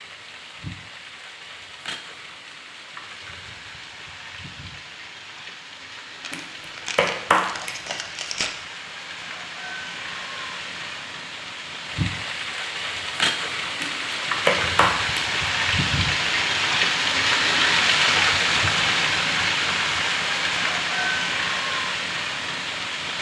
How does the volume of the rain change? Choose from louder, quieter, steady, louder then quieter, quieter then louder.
louder.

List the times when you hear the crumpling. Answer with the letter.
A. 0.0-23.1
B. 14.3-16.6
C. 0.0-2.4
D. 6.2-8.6
D.